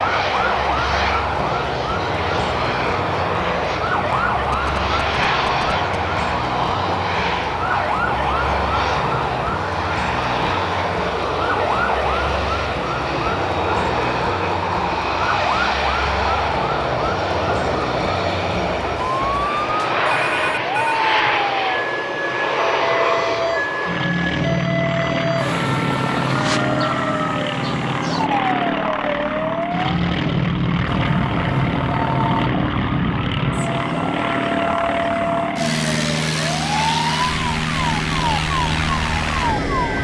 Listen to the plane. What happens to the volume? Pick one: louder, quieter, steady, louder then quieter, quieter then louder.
steady.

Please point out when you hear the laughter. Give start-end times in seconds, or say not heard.
not heard.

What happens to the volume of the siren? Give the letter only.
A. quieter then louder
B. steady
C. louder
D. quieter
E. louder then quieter
B.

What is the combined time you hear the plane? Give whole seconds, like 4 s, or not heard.
40 s.